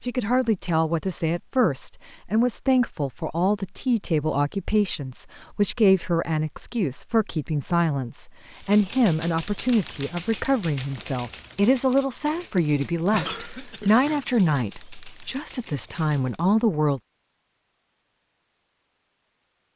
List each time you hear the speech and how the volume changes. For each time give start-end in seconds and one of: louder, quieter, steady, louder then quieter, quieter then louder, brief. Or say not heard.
0.0-17.0 steady.